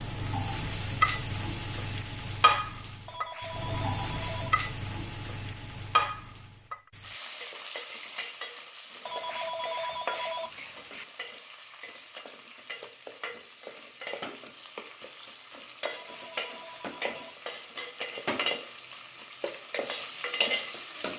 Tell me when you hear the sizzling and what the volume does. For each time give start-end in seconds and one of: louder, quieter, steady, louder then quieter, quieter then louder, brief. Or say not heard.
0.0-21.1 quieter then louder.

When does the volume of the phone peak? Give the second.
10 s.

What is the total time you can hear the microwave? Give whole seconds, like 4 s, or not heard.
not heard.